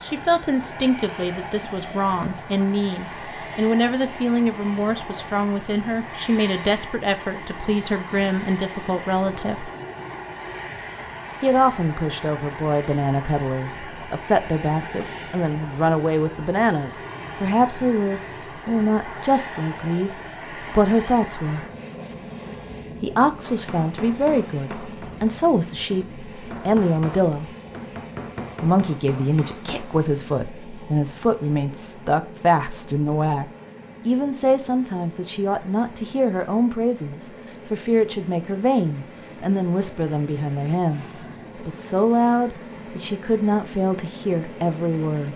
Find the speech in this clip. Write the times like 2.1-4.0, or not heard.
0.0-9.7, 11.4-21.6, 23.0-27.5, 28.6-45.3.